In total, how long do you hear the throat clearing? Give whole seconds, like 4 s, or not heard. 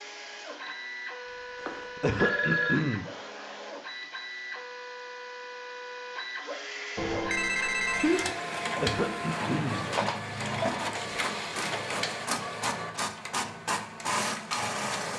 3 s.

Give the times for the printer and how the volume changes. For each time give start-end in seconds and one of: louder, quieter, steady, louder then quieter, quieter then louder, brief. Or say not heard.
0.0-15.1 louder.